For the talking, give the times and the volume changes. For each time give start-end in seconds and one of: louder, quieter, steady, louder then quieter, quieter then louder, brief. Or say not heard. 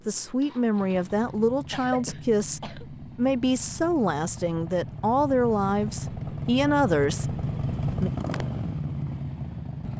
0.1-8.1 steady.